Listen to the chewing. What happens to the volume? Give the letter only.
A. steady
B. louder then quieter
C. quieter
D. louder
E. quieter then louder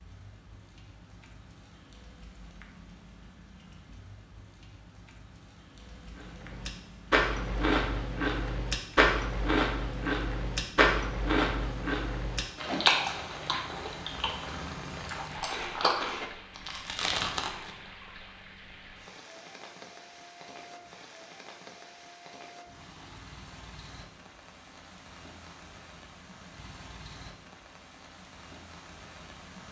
E.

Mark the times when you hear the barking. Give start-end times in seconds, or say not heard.
not heard.